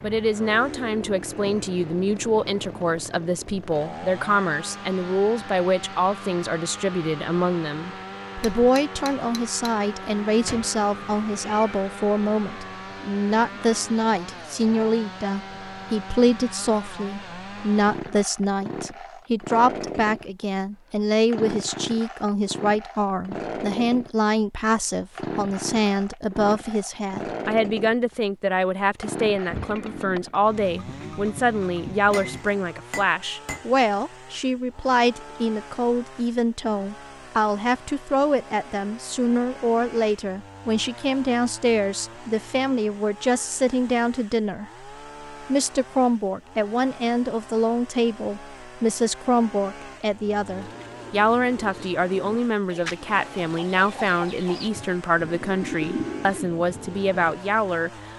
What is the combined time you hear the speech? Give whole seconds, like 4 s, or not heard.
58 s.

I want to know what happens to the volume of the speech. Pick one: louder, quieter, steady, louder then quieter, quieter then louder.
steady.